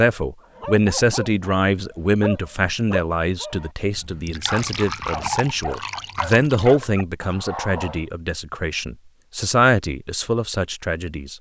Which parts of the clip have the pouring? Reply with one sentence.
The pouring can be heard from 4.2 to 6.8 s.